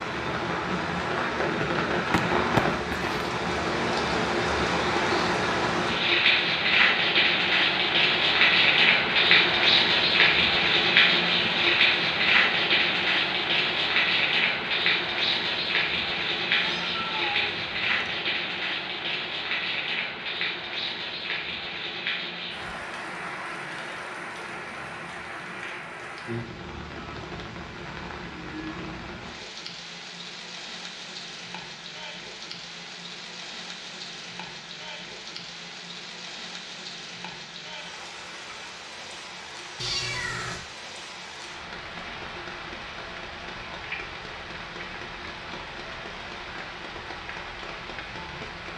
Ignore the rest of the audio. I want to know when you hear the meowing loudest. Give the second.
40 s.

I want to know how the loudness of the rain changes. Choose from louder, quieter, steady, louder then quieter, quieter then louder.
quieter.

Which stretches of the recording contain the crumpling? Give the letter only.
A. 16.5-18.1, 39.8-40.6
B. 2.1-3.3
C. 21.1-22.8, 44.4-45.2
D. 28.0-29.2
B.